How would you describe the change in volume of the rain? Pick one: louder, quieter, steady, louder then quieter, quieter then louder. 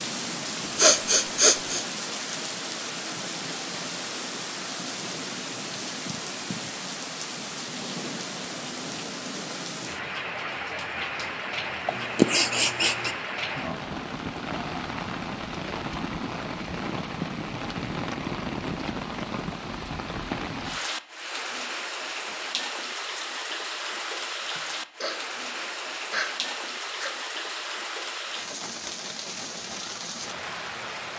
steady.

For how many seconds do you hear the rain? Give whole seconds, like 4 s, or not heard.
31 s.